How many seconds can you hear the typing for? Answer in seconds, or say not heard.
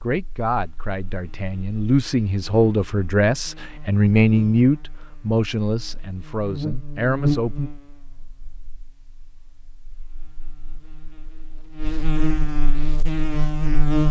not heard.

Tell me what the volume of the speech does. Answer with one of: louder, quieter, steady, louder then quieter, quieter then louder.
louder then quieter.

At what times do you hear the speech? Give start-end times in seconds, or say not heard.
0.0-7.7.